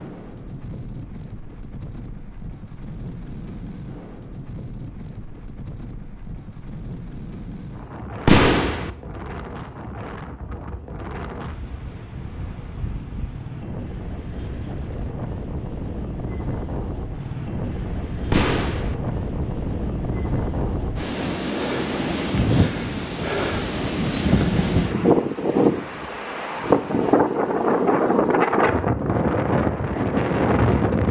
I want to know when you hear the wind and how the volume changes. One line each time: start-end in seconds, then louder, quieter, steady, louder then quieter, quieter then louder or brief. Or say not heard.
0.0-31.0 louder.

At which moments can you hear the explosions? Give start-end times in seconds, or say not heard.
8.2-8.9, 18.3-18.9.